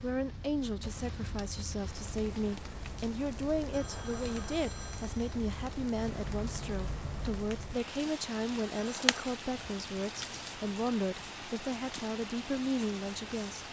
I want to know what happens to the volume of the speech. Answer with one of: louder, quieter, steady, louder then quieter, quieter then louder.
steady.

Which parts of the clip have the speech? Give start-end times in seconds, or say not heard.
0.0-13.6.